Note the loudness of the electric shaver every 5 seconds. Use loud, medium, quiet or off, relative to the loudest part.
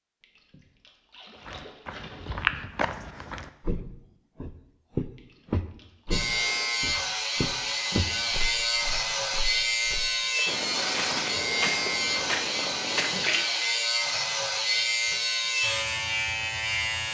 off, loud, loud, loud.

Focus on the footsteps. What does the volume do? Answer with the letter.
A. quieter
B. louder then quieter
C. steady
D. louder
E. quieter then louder
E.